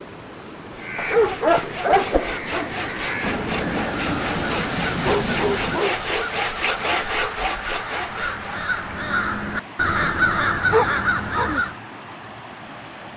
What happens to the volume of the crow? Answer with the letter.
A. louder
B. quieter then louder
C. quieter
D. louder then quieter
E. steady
A.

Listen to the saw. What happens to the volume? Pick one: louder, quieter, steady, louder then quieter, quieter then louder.
louder.